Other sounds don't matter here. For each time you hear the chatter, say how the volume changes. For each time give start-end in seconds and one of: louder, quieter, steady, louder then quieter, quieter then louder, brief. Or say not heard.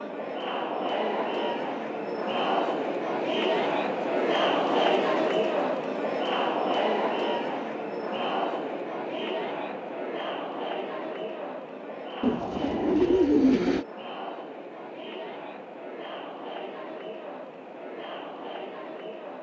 0.0-19.3 quieter.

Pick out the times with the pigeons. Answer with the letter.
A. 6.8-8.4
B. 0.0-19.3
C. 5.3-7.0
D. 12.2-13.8
D.